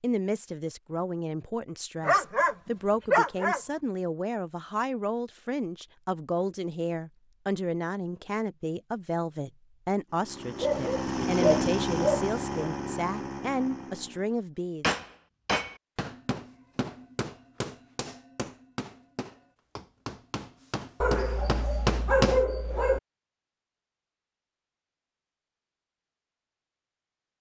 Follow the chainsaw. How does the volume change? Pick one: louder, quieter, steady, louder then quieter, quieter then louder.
louder then quieter.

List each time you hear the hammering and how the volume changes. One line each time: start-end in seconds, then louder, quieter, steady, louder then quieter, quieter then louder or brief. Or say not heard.
14.8-22.4 quieter then louder.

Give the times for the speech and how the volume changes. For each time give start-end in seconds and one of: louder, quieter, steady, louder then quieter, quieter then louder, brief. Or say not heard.
0.0-14.9 steady.